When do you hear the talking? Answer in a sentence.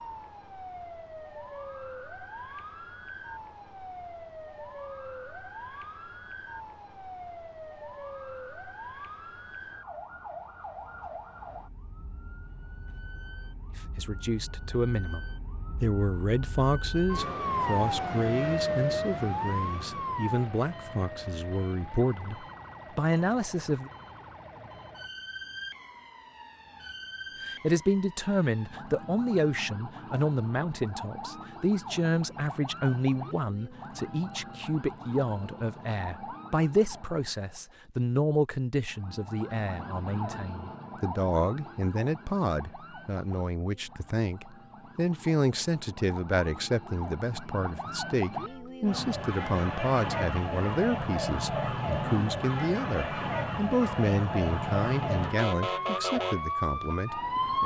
You can hear the talking from 13.8 to 23.9 s and from 27.4 to 57.6 s.